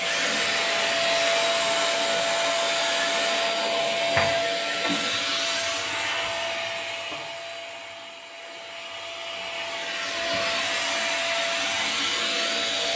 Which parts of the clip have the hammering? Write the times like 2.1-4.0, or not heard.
not heard.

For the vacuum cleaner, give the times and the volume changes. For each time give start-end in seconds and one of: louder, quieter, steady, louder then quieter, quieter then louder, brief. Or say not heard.
0.0-12.9 quieter then louder.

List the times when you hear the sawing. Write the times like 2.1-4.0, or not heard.
0.0-3.5.